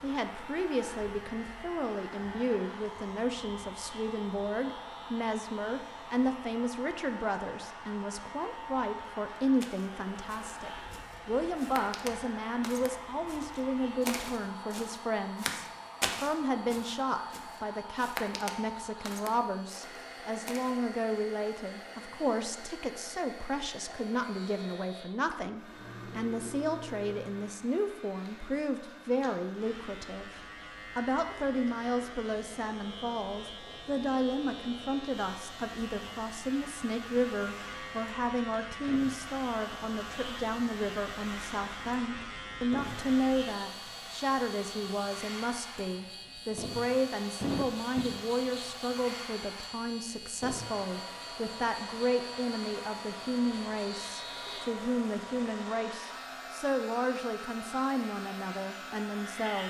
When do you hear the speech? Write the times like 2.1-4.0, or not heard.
0.0-59.6.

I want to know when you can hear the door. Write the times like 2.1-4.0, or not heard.
not heard.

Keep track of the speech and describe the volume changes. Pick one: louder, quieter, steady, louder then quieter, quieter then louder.
steady.